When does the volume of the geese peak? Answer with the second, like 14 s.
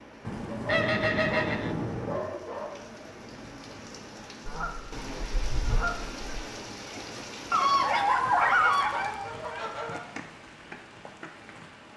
1 s.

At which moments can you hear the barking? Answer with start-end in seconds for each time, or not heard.
0.5-2.8, 7.5-9.1.